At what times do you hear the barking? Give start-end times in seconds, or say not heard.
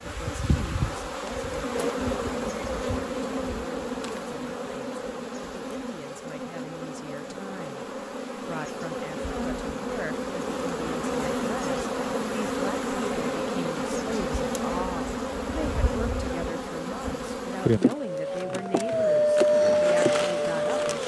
18.1-21.0.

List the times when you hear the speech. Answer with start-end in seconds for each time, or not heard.
0.0-21.0.